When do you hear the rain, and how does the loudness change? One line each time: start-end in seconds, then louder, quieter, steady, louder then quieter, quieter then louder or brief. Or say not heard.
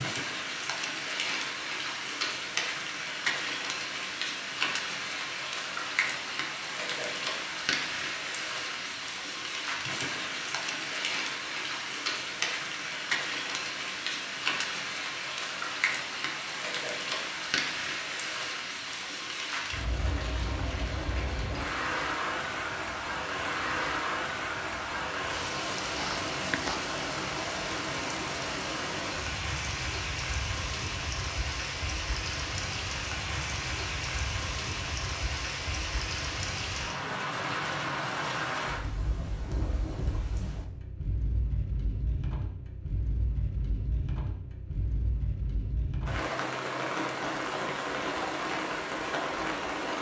0.0-49.9 steady.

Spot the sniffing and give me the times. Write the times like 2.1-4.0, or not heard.
25.9-26.8.